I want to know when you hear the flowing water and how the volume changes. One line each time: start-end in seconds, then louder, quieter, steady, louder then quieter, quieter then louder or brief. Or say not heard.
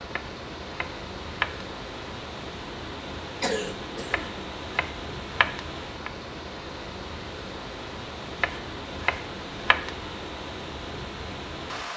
0.0-11.9 steady.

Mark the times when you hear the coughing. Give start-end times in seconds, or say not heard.
3.4-4.4.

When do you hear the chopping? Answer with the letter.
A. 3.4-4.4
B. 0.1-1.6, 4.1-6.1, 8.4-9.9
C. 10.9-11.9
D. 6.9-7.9
B.